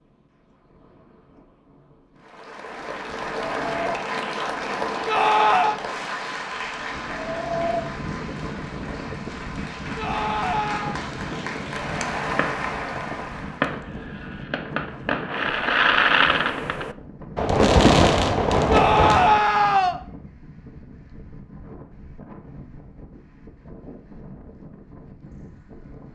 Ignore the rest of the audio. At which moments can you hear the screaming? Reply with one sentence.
The screaming can be heard from 5.0 to 5.8 s, from 9.9 to 11.0 s and from 18.7 to 19.9 s.